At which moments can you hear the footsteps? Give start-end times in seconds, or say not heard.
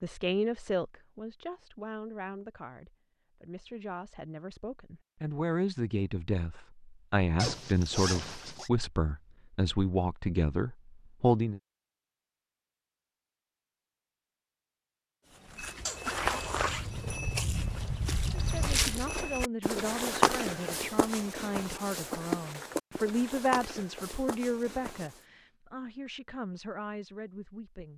15.3-25.2.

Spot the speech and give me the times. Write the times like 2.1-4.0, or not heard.
0.0-11.6, 18.4-27.9.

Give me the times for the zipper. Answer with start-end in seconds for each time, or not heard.
7.3-8.7, 15.8-16.9.